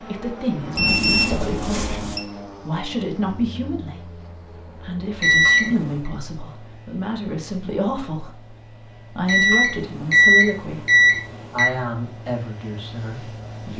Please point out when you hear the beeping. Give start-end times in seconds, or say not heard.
0.8-2.2, 5.2-6.0, 9.2-11.7.